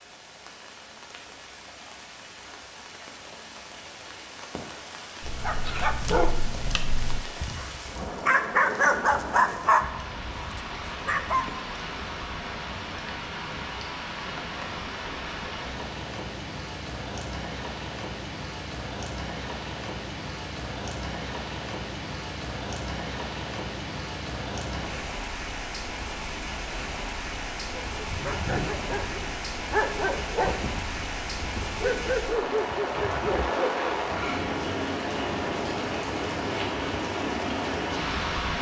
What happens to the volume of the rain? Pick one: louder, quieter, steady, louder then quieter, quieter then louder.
louder.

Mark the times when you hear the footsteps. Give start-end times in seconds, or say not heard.
not heard.